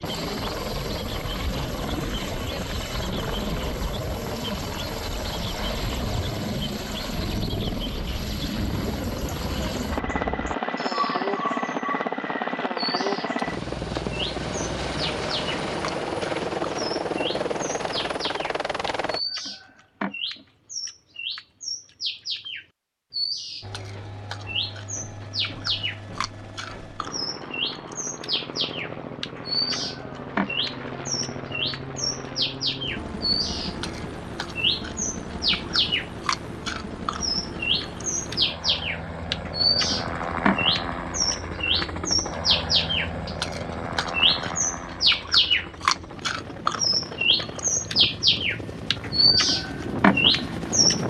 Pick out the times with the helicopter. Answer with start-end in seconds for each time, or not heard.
0.0-19.2, 23.6-51.0.